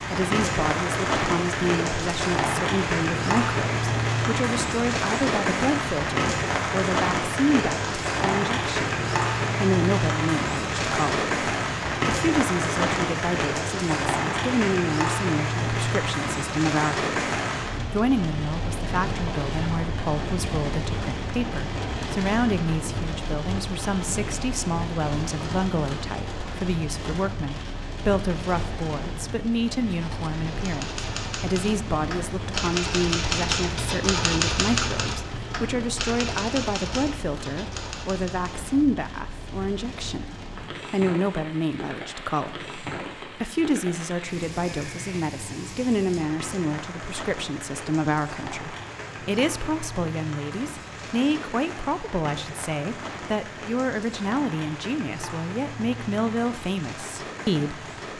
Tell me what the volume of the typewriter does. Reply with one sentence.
The loudness of the typewriter goes up, then down.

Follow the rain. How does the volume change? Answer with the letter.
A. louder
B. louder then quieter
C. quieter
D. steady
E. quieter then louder
C.